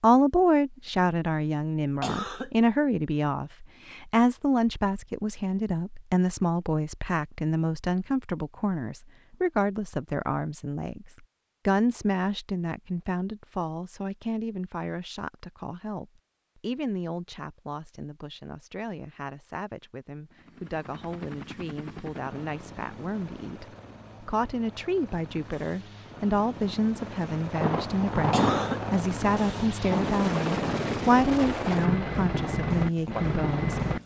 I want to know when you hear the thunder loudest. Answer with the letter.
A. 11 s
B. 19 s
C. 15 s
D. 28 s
D.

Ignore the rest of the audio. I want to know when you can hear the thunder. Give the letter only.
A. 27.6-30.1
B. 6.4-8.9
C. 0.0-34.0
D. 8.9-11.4
A.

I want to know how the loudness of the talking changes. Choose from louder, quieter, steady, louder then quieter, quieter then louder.
quieter then louder.